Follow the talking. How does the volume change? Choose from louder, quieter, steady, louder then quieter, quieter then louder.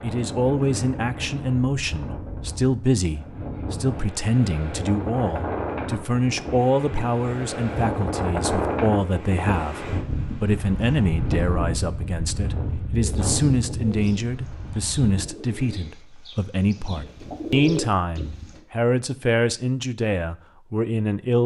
steady.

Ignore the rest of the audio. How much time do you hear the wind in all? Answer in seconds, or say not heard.
15 s.